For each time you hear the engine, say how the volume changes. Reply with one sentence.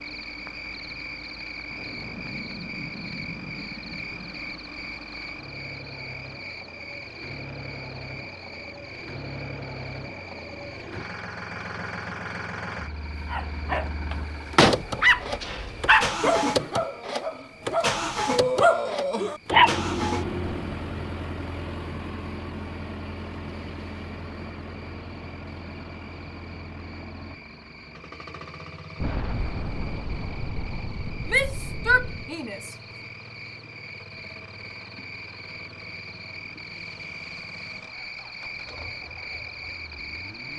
The engine can be heard from 0.0 to 40.5 s, getting louder then quieter.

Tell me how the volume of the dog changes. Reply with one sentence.
The loudness of the dog goes down, then up.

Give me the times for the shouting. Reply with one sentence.
The shouting can be heard from 31.2 to 32.8 s.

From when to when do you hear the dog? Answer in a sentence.
The dog can be heard from 13.3 to 20.6 s.